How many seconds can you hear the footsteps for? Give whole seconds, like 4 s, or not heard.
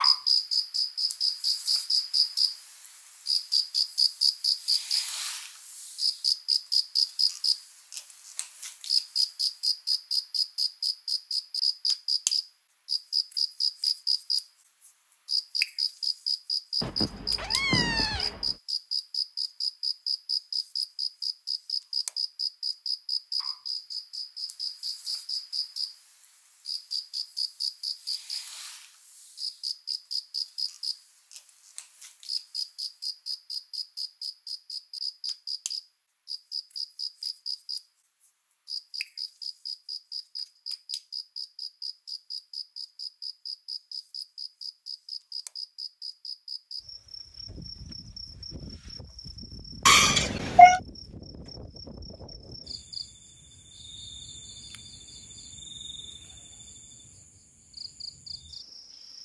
not heard.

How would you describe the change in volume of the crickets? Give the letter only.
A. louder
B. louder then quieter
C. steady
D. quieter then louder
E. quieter
E.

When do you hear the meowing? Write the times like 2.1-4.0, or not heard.
16.8-18.6, 49.9-50.8.